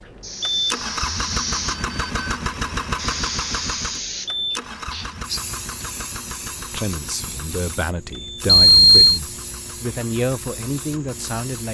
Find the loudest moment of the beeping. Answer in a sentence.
The loudest moment of the beeping is at 9 seconds.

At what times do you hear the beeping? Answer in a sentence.
You can hear the beeping from 1.4 to 2.5 s and from 8.4 to 9.2 s.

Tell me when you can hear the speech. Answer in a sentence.
The speech can be heard from 6.6 to 11.6 s.